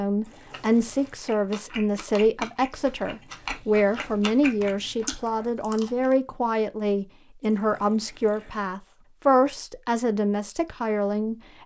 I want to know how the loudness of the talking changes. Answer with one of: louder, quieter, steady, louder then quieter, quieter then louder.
steady.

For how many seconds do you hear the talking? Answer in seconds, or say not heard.
11 s.